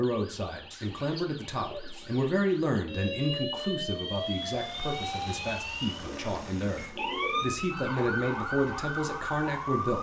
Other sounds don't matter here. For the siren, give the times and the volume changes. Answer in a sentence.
The siren can be heard from 0.0 to 9.9 s, getting louder.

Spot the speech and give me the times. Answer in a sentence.
You can hear the speech from 0.0 to 9.9 s.